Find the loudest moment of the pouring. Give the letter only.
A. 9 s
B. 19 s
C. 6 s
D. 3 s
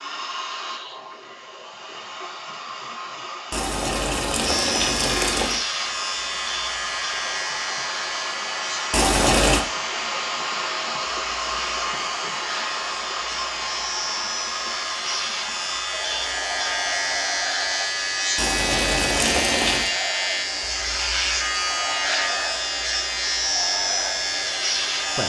A.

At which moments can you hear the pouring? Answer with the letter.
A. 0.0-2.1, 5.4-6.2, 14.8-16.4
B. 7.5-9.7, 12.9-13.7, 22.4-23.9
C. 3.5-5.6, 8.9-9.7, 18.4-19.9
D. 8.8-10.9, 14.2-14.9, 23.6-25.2
C.